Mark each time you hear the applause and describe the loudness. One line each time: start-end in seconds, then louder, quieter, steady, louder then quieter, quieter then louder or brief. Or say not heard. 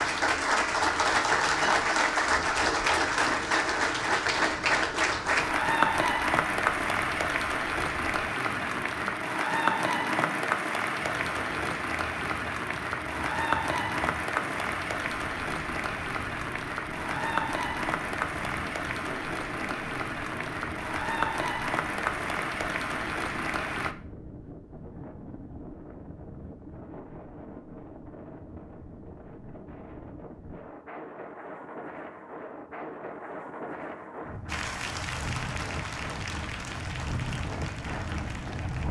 0.0-23.9 quieter
34.5-38.8 quieter.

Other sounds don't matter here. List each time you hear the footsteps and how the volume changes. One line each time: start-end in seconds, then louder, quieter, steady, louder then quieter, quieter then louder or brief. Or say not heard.
not heard.